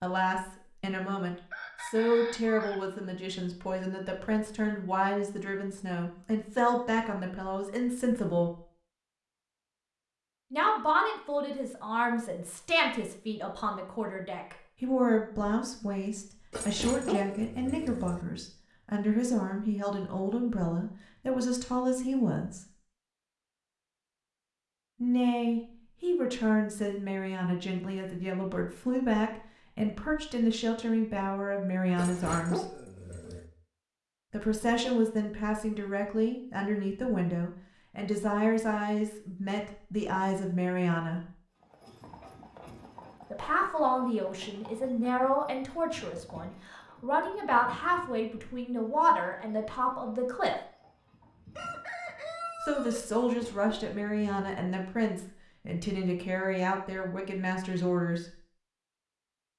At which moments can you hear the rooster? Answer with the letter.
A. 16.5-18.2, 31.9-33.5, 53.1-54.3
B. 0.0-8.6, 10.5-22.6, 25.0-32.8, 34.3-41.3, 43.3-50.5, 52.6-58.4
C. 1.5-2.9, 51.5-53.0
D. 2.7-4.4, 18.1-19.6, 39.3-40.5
C.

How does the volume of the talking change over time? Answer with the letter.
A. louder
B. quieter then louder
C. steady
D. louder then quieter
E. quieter
C.